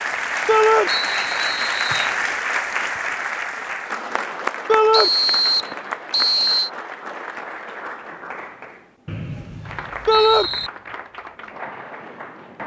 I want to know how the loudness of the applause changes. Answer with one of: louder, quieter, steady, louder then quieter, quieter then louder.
quieter.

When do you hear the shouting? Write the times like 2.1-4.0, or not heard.
0.5-0.9, 4.7-5.1, 10.1-10.5.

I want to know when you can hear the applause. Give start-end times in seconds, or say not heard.
0.0-12.6.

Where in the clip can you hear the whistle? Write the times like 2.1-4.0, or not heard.
0.8-2.1, 4.9-6.7, 9.1-10.7.